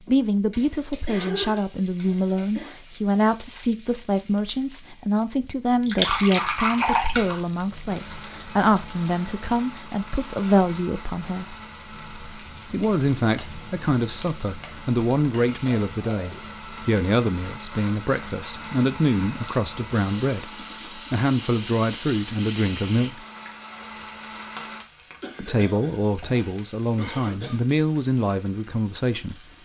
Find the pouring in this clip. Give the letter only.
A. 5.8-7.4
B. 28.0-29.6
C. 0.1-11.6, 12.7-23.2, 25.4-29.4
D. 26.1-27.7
A.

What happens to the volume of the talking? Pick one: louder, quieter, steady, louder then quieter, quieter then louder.
steady.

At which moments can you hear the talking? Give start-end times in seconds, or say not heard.
0.1-11.6, 12.7-23.2, 25.4-29.4.